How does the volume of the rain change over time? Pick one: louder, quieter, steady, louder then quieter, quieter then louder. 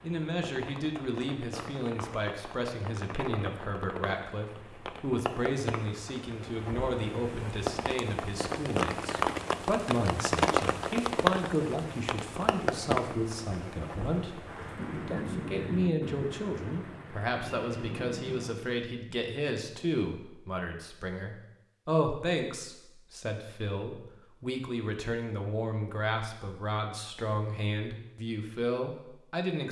louder then quieter.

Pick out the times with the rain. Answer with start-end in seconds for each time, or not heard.
0.0-18.7.